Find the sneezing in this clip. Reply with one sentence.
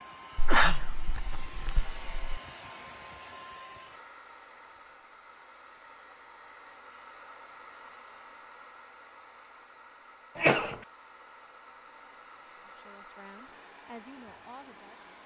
You can hear the sneezing from 0.3 to 2.4 s and from 10.3 to 10.8 s.